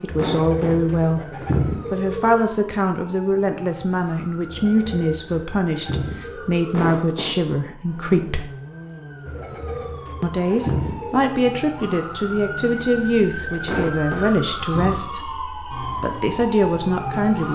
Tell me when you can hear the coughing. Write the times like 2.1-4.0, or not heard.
0.1-0.9, 6.7-7.5, 13.7-14.3.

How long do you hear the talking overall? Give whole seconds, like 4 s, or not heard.
15 s.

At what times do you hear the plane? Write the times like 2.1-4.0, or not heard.
not heard.